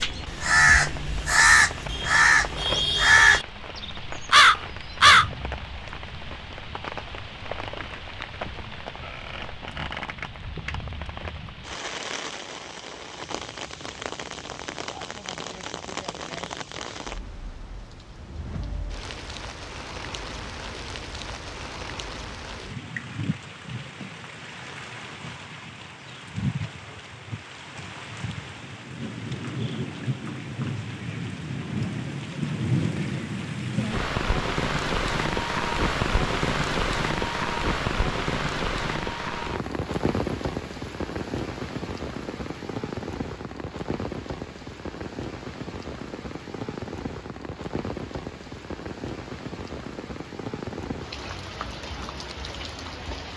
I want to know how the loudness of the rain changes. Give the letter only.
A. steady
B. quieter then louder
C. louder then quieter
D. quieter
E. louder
C.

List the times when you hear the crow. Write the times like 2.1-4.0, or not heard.
0.0-5.2.